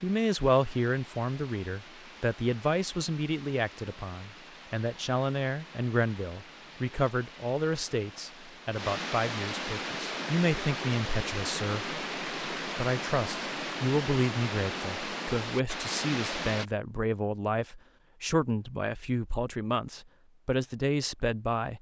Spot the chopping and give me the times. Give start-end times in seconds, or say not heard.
not heard.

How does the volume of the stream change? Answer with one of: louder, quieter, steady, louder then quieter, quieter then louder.
louder.